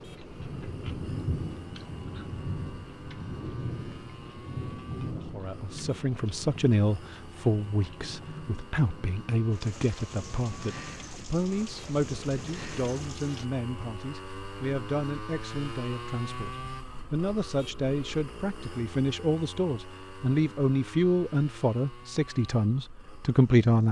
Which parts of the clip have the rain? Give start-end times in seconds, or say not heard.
0.0-13.4.